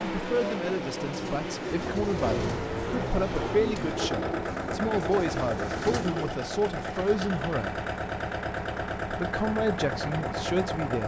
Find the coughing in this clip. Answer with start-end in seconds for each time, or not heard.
not heard.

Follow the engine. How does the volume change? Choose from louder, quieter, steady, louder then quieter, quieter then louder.
steady.